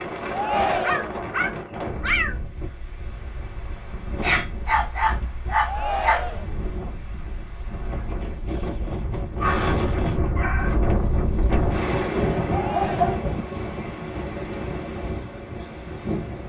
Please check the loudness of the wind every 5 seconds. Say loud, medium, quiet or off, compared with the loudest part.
medium, medium, loud, medium.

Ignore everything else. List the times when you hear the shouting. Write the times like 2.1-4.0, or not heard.
0.3-1.2, 5.6-6.5, 12.4-13.2.